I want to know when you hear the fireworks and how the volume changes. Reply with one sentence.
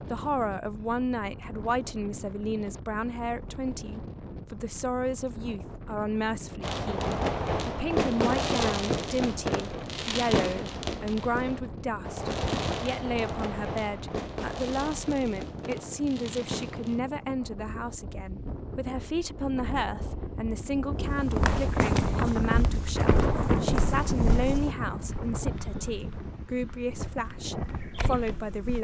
The fireworks can be heard from 6.6 to 17.0 s, getting quieter.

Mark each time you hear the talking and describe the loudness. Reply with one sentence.
You can hear the talking from 0.1 to 28.7 s, at a steady volume.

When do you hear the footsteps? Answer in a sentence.
You can hear the footsteps from 21.0 to 28.7 s.